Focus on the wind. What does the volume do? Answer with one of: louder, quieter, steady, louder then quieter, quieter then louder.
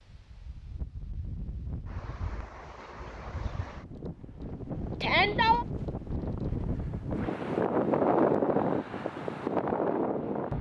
louder.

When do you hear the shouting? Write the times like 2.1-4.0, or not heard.
5.0-5.7.